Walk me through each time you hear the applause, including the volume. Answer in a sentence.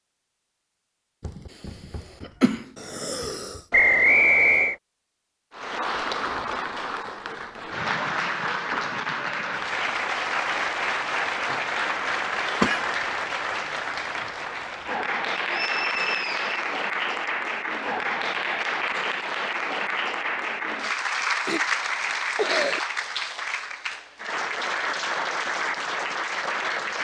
The applause can be heard from 5.5 to 26.9 s, at a steady volume.